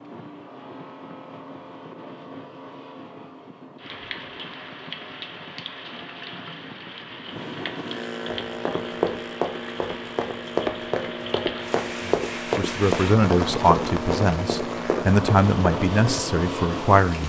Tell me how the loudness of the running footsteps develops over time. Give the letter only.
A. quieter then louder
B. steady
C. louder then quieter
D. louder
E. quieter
B.